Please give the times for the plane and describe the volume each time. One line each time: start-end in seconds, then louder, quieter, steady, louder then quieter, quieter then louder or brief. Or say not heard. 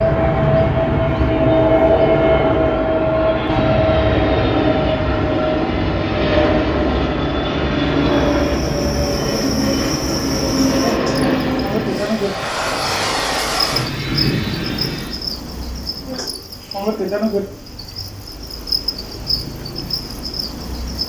0.0-15.2 quieter.